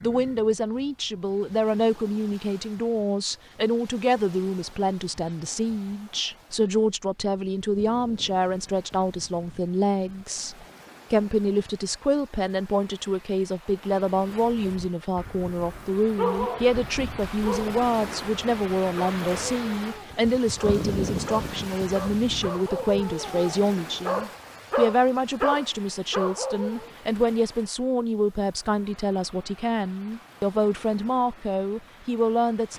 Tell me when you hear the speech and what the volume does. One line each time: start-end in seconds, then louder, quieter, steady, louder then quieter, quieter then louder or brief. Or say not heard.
0.0-32.7 steady.